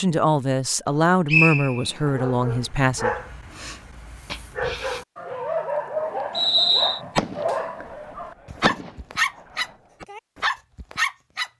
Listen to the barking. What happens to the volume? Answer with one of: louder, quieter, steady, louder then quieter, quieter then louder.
louder.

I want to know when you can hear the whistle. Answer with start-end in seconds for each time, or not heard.
1.2-1.9, 6.3-7.0.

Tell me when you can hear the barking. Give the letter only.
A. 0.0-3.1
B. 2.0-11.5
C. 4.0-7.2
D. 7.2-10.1
B.